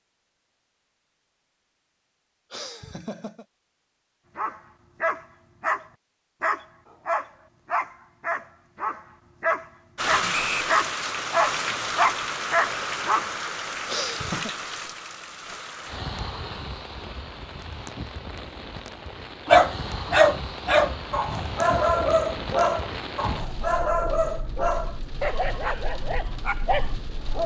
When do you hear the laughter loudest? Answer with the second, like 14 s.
14 s.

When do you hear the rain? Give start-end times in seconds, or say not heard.
9.9-27.4.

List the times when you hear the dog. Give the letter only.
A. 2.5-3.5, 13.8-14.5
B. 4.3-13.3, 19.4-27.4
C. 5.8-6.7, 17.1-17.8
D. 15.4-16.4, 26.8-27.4
B.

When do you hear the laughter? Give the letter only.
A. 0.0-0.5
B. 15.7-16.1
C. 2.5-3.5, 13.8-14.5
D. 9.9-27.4
C.